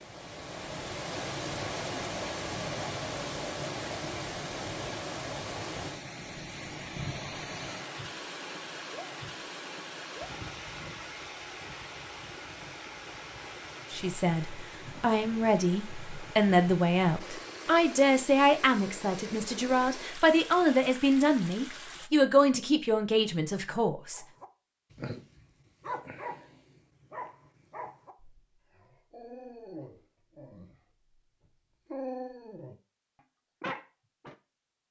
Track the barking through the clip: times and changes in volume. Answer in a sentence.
The barking can be heard from 24.1 to 30.8 s, getting quieter then louder; briefly from 31.9 to 32.8 s; and briefly from 33.6 to 34.4 s.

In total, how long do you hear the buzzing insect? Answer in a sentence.
You can't hear the buzzing insect here.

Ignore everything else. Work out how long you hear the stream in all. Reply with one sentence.
The stream can be heard for 22 seconds in total.